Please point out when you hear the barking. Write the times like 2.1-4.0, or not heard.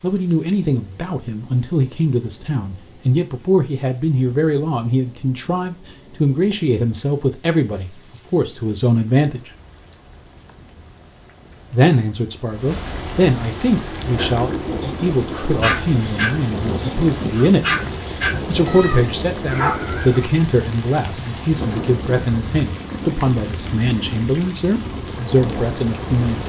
14.2-20.2.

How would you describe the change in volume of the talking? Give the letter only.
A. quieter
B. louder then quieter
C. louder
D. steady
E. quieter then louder
D.